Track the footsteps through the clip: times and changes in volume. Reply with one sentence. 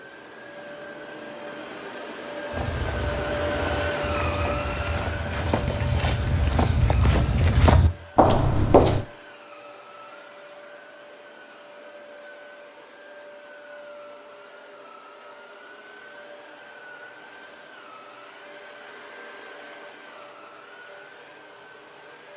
The footsteps can be heard from 2.5 to 9.1 s, getting louder.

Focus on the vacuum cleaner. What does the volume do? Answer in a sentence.
The loudness of the vacuum cleaner goes down.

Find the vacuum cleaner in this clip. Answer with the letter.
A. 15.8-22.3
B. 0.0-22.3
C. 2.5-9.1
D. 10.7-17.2
B.